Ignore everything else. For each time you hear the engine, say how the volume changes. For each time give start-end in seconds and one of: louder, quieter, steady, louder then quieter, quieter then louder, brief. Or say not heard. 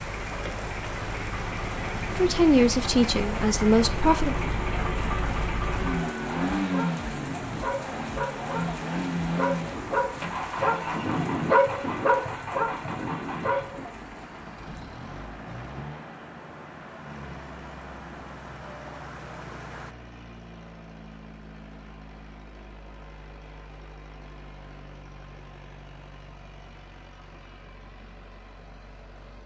0.0-29.4 quieter.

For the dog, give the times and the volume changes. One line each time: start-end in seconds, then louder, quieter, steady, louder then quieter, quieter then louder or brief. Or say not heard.
5.8-13.8 louder.